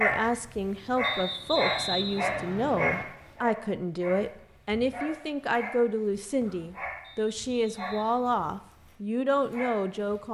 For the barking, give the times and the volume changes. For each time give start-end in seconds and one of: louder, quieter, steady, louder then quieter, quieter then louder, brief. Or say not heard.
0.0-10.2 quieter.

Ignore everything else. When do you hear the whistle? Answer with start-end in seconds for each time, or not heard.
1.0-3.0, 7.0-8.4.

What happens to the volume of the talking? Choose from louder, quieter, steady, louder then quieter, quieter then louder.
steady.